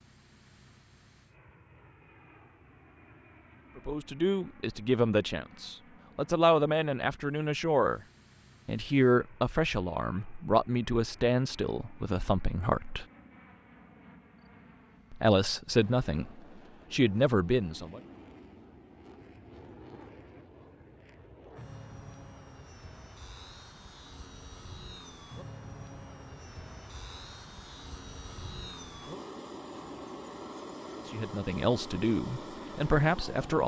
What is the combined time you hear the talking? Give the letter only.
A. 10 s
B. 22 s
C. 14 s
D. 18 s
C.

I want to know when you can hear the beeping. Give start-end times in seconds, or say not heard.
not heard.